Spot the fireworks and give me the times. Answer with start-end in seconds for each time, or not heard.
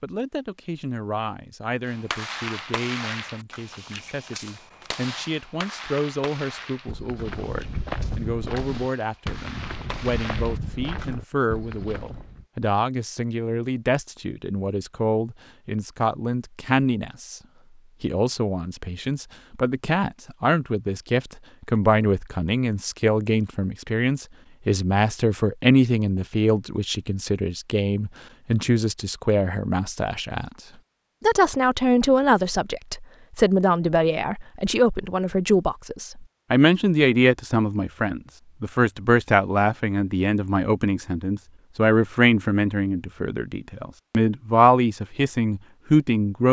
1.9-11.1.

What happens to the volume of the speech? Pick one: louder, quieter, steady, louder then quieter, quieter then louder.
louder.